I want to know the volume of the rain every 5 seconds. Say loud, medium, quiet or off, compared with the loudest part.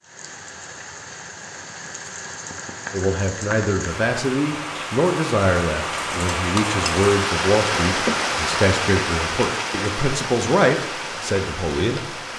medium, loud, medium.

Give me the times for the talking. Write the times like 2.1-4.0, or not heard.
2.9-12.3.